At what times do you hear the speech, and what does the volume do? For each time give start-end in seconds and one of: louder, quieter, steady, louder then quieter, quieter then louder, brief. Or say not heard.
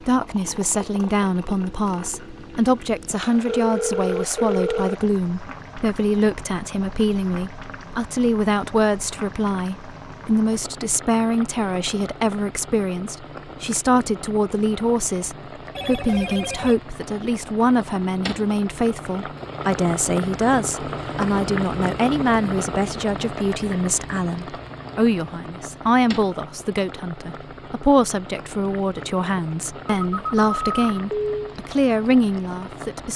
0.1-33.1 steady.